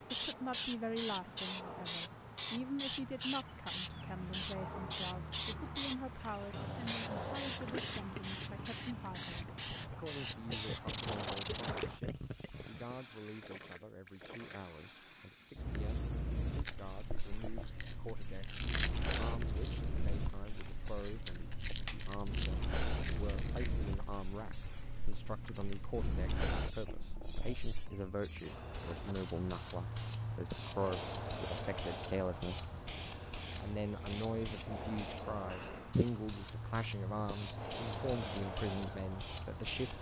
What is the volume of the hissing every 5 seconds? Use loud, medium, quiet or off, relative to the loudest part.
loud, loud, loud, medium, medium, medium, loud, loud.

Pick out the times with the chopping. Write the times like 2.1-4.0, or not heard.
not heard.